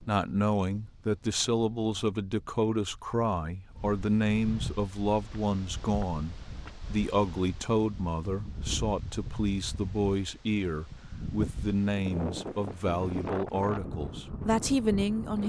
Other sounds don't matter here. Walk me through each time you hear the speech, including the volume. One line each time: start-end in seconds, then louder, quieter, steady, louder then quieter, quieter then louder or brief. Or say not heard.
0.0-15.4 steady.